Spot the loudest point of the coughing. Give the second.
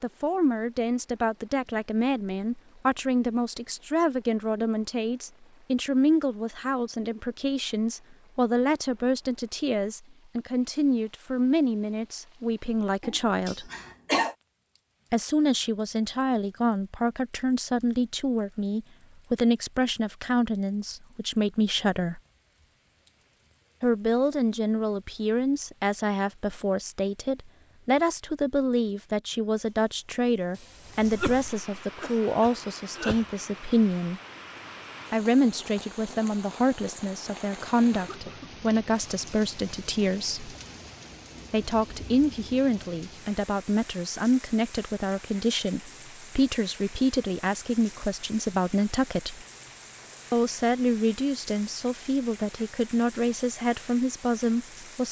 14 s.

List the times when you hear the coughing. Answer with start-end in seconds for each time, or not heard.
13.0-14.3, 30.6-33.2, 37.8-38.5.